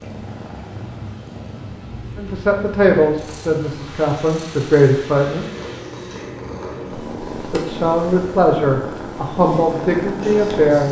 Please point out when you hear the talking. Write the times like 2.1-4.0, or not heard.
2.1-5.5, 7.5-10.8.